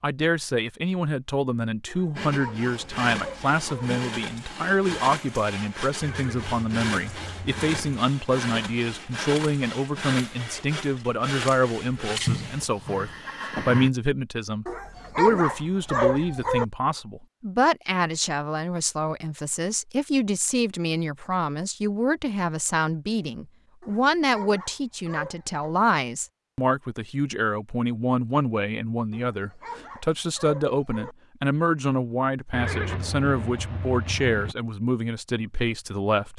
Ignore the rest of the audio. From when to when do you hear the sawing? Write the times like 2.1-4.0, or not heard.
2.1-12.7.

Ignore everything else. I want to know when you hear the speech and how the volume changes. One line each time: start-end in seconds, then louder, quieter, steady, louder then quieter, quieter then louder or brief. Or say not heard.
0.0-36.3 steady.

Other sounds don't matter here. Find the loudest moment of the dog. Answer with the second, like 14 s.
16 s.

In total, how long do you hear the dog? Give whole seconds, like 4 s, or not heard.
8 s.